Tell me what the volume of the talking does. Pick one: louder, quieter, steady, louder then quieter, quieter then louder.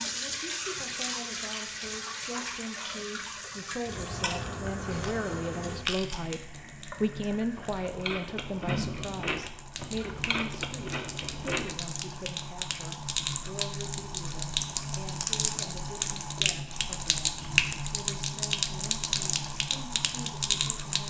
louder then quieter.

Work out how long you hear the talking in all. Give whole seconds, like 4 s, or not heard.
21 s.